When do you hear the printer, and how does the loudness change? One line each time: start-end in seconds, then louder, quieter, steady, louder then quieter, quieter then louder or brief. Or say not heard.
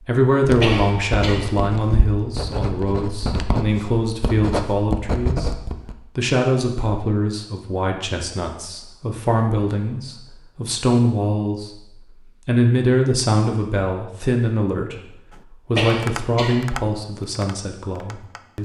not heard.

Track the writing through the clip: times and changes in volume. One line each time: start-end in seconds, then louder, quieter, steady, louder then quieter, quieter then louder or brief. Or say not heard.
0.4-6.0 louder.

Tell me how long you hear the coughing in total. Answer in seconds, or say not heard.
2 s.